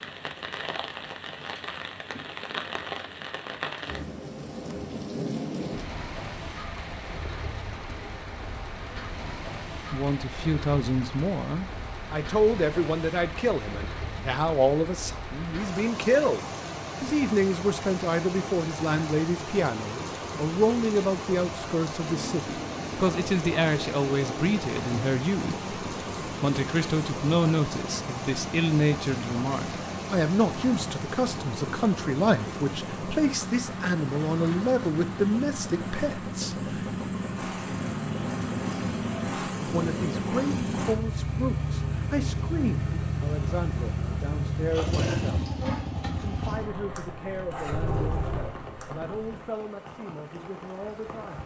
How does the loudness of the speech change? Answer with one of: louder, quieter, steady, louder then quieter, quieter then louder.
quieter.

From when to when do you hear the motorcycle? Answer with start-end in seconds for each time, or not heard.
22.0-49.4.